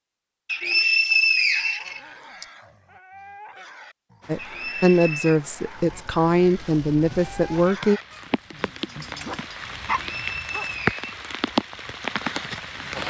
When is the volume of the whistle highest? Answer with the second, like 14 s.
1 s.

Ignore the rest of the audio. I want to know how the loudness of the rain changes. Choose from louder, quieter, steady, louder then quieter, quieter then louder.
louder.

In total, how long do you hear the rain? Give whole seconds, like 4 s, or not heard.
9 s.